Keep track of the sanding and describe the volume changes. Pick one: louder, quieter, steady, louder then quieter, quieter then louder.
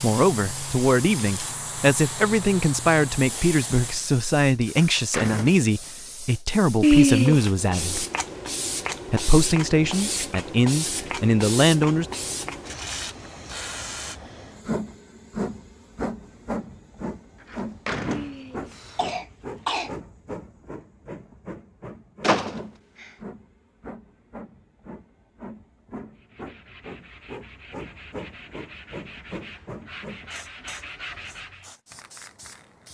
louder.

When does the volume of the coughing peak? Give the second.
7 s.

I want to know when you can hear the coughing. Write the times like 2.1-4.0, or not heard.
6.8-7.5, 18.1-19.9.